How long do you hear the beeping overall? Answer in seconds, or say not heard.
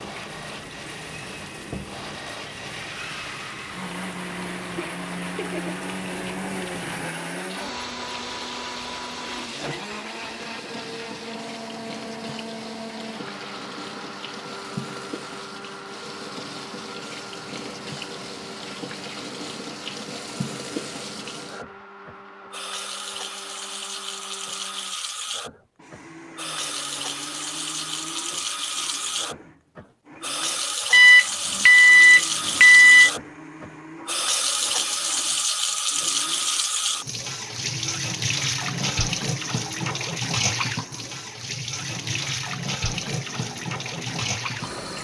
2 s.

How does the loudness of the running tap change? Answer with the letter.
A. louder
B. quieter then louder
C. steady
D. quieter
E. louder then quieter
A.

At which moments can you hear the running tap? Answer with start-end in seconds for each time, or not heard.
0.0-44.9.